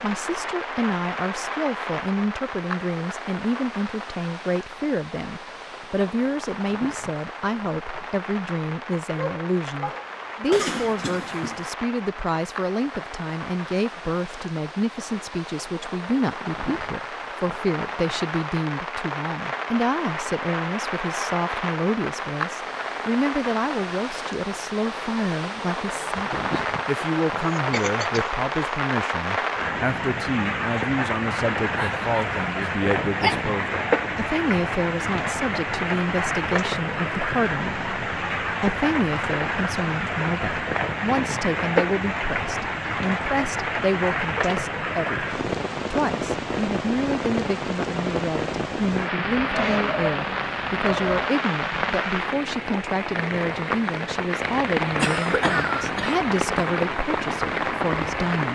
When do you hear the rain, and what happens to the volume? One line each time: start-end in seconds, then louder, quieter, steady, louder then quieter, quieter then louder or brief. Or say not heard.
0.0-58.5 louder.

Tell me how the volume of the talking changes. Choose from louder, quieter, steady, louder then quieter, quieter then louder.
steady.